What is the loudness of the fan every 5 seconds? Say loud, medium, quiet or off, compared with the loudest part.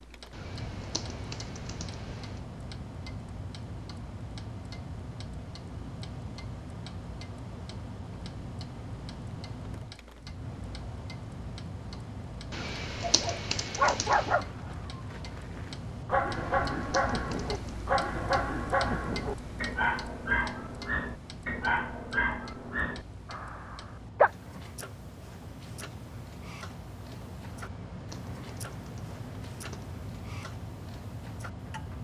loud, loud, loud, loud, medium, loud, loud.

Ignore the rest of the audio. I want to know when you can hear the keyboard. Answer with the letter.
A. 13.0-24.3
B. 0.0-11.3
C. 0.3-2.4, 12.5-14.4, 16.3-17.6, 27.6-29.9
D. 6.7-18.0
C.